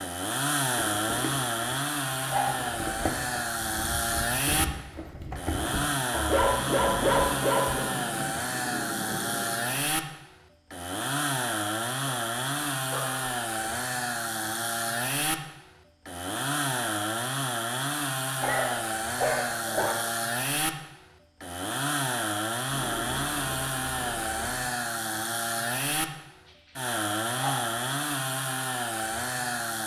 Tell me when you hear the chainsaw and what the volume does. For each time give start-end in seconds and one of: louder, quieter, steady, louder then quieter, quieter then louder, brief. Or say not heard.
0.0-29.8 steady.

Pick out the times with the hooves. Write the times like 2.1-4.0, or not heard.
0.8-5.9.